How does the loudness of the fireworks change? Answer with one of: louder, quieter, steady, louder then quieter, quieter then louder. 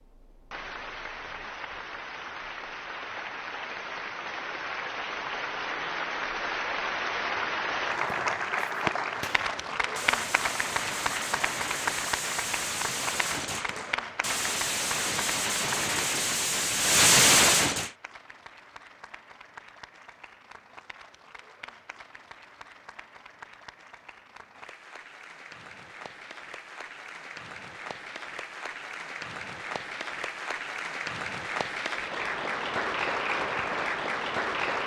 louder.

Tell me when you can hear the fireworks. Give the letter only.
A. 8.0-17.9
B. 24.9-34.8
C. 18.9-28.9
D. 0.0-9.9
A.